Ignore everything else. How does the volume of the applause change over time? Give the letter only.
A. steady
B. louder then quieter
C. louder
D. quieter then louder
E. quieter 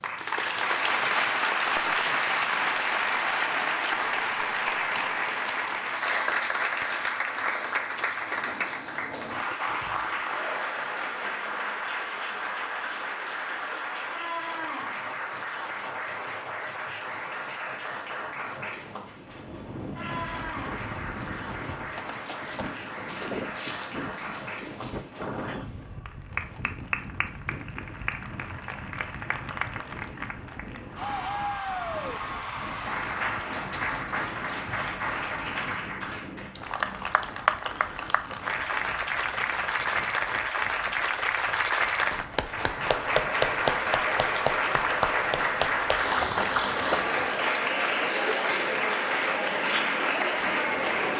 D.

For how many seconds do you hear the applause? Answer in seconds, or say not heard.
51 s.